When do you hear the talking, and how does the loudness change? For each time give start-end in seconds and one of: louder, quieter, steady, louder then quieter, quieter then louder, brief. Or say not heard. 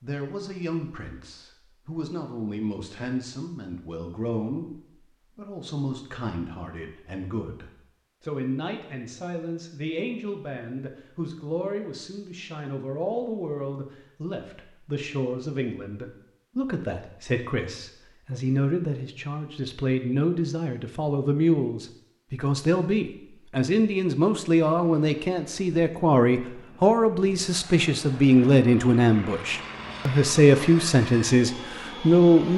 0.0-32.5 louder.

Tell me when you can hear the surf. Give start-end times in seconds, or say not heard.
not heard.